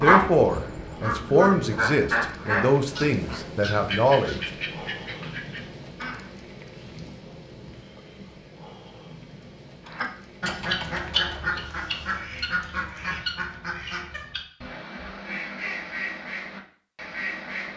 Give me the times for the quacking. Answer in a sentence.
You can hear the quacking from 0.0 to 6.3 s and from 9.9 to 17.7 s.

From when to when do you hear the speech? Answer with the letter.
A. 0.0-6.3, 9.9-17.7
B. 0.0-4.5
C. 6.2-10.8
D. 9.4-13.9
B.